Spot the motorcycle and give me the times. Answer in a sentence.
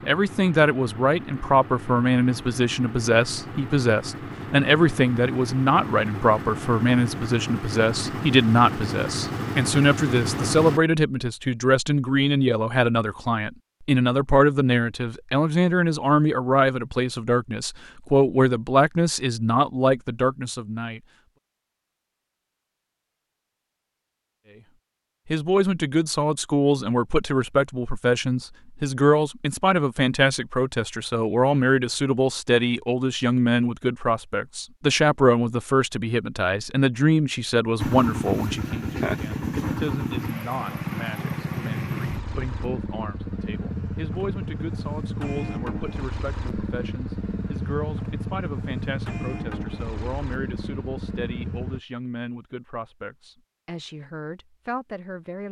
You can hear the motorcycle from 0.0 to 10.8 s and from 37.8 to 51.8 s.